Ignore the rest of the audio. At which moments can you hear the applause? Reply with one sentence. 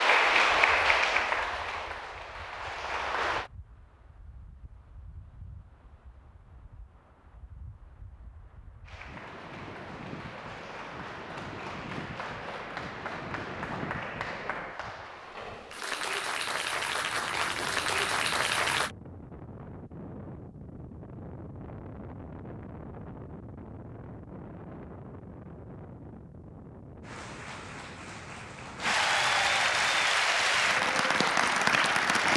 The applause can be heard from 0.0 to 3.5 s, from 8.8 to 18.9 s and from 27.0 to 32.3 s.